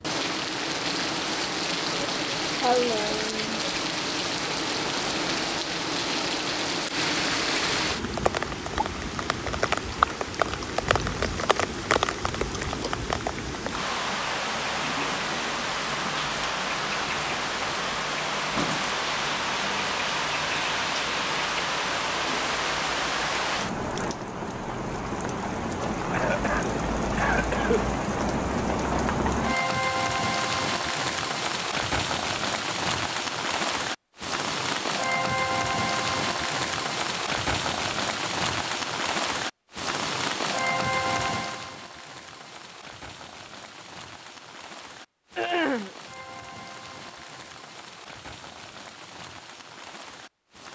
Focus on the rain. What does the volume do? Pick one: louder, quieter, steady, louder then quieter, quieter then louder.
quieter.